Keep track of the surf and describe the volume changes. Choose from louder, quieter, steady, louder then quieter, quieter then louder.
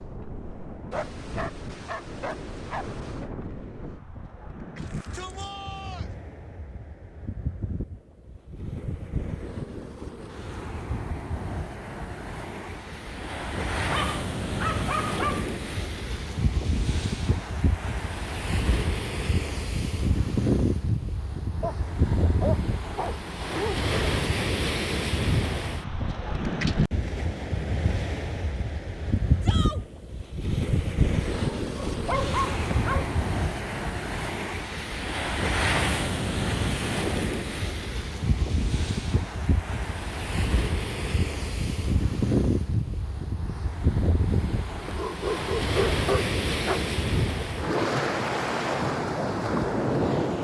louder.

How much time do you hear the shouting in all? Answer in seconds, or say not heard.
2 s.